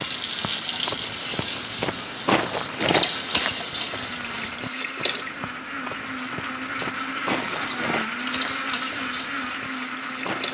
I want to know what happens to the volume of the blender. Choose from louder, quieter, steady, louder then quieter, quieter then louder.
louder.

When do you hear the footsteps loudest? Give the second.
2 s.